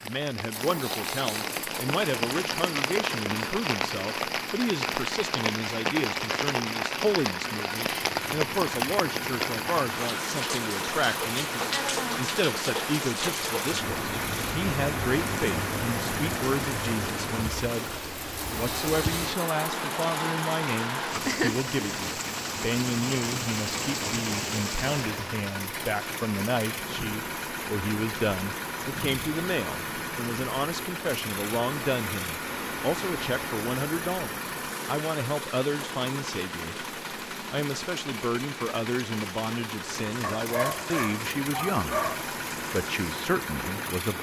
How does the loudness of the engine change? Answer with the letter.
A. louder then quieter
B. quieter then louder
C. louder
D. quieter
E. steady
E.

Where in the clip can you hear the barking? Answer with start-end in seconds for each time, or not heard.
40.2-42.2.